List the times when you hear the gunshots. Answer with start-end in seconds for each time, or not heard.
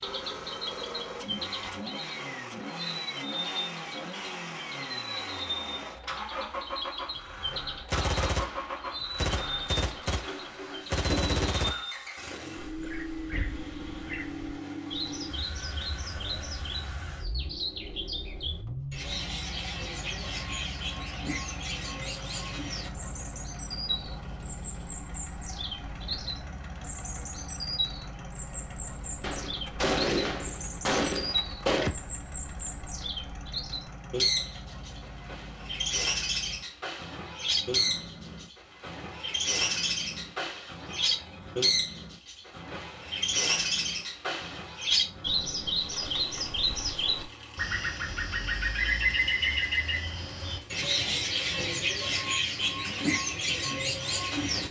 7.9-11.8, 29.2-31.9.